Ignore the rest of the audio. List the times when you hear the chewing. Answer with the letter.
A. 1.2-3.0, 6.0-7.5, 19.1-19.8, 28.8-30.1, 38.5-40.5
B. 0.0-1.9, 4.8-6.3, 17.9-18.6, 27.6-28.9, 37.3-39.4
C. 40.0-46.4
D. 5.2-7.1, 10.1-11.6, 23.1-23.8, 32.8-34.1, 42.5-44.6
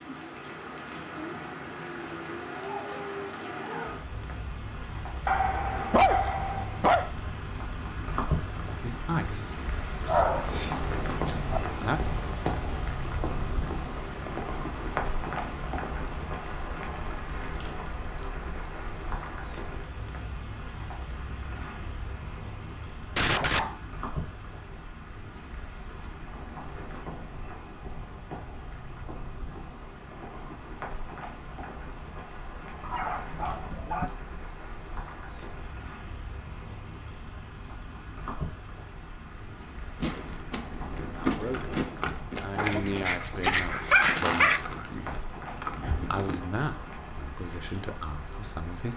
C.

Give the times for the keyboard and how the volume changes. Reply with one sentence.
You can't hear the keyboard here.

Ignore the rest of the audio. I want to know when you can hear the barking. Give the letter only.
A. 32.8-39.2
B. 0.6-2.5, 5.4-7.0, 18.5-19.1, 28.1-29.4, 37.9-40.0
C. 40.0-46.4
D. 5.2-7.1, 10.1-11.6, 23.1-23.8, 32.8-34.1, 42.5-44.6
D.